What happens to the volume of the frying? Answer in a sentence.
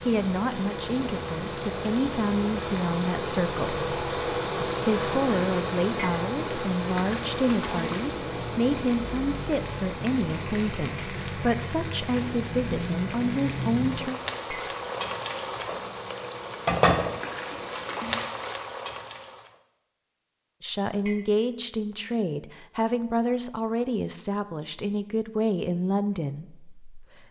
The loudness of the frying goes up.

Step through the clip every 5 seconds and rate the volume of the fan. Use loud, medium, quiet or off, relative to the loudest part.
loud, loud, medium, medium, off, off.